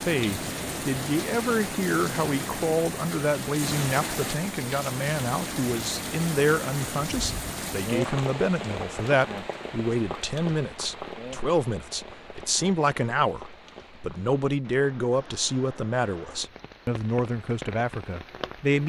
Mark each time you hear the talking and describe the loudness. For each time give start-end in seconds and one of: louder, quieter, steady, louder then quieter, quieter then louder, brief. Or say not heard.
0.0-18.8 steady.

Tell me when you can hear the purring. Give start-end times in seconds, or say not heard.
not heard.